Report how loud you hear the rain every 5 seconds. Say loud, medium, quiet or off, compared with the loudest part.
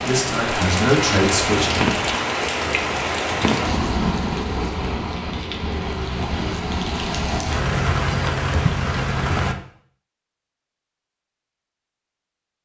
loud, loud, off.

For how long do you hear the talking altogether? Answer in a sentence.
The talking can be heard for 2 seconds in total.